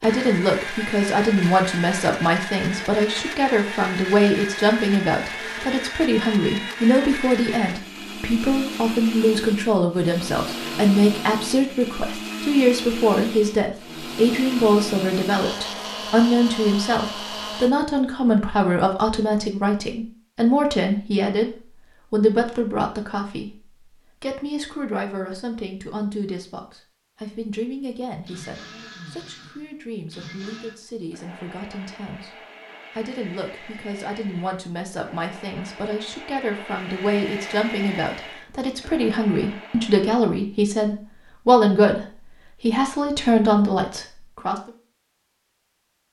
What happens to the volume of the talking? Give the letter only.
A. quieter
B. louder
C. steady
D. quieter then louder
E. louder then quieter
D.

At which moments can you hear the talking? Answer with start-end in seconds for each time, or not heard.
0.0-44.7.